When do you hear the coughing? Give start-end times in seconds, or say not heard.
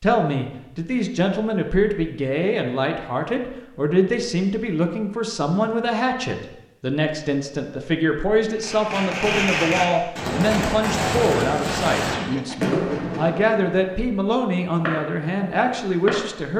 12.1-12.8.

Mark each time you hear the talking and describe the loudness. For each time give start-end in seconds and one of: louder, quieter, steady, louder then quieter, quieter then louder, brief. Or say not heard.
0.0-16.5 steady.